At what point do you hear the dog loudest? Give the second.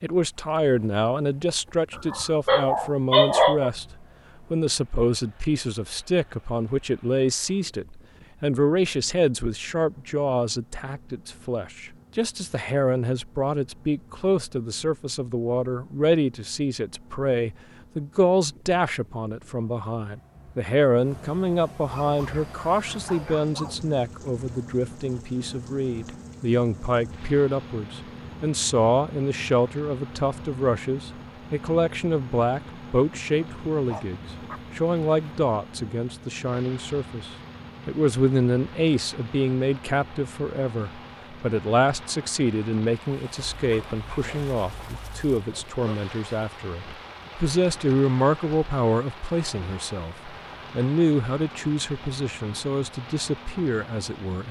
3 s.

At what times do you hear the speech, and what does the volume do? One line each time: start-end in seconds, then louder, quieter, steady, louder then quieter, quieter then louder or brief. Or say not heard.
0.0-54.4 steady.